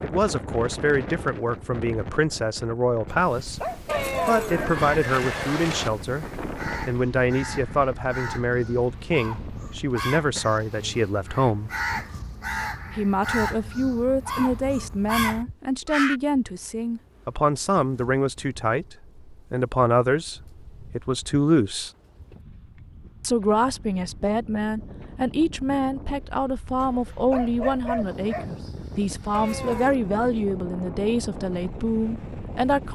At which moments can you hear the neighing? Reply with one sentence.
You can hear the neighing from 3.9 to 5.9 s and from 29.3 to 30.0 s.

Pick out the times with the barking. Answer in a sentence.
The barking can be heard from 3.0 to 4.7 s and from 26.8 to 28.6 s.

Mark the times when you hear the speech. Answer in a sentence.
You can hear the speech from 0.0 to 3.6 s, from 4.2 to 11.7 s, from 12.9 to 21.9 s and from 23.2 to 32.8 s.